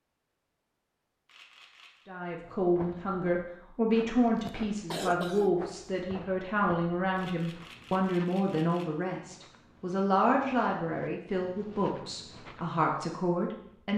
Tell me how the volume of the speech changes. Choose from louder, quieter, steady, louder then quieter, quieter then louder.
steady.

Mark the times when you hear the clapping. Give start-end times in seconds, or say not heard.
not heard.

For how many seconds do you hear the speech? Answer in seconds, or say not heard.
12 s.